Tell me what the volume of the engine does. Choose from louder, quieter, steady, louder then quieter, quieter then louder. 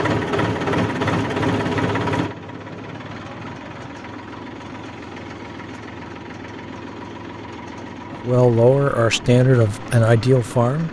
quieter.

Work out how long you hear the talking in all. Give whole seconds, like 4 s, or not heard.
3 s.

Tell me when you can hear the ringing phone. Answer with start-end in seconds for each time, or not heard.
not heard.